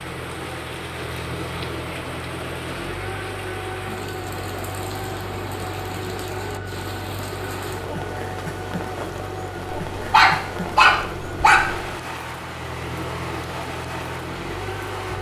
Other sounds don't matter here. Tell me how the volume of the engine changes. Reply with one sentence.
The loudness of the engine stays about the same.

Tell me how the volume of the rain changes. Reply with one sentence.
The volume of the rain stays about the same.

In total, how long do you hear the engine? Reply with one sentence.
The engine can be heard for 15 seconds in total.